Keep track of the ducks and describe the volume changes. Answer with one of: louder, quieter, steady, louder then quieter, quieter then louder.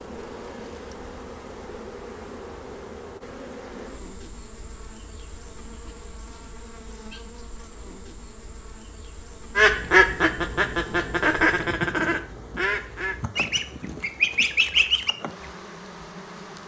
quieter then louder.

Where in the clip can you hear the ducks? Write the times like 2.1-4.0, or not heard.
9.6-15.2.